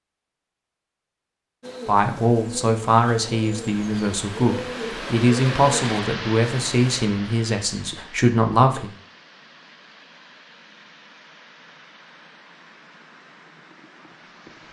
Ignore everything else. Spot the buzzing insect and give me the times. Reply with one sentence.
The buzzing insect can't be heard in this clip.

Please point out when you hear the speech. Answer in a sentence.
You can hear the speech from 1.9 to 8.9 s.